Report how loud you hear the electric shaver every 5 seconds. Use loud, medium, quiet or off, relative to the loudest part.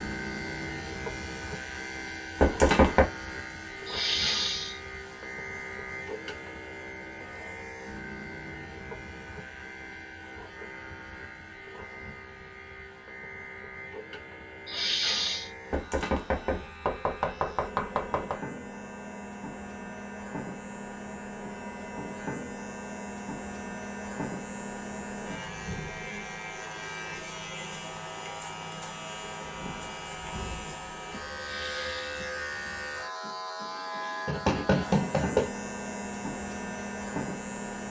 loud, medium, medium, medium, loud, loud, loud, loud.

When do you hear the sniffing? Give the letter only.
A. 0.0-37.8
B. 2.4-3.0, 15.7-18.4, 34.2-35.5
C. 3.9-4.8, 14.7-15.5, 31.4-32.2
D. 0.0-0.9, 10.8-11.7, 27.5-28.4
C.